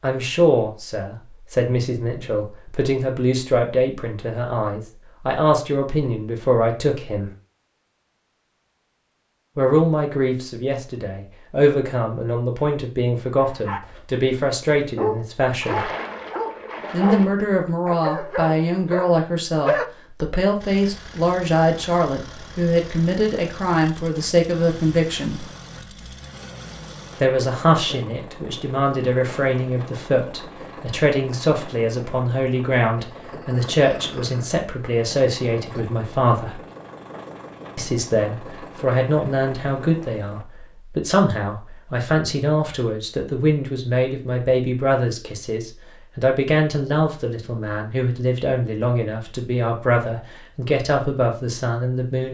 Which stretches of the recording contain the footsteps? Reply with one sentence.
You can't hear the footsteps here.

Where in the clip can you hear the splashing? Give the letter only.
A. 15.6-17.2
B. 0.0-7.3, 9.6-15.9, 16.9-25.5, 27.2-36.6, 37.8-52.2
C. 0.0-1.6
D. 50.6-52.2
A.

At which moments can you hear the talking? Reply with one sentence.
The talking can be heard from 0.0 to 7.3 s, from 9.6 to 15.9 s, from 16.9 to 25.5 s, from 27.2 to 36.6 s and from 37.8 to 52.2 s.